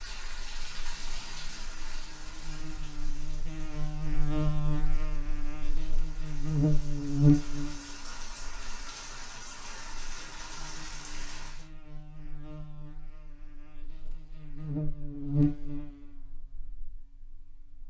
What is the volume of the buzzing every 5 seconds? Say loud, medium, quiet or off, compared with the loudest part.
medium, loud, quiet, medium.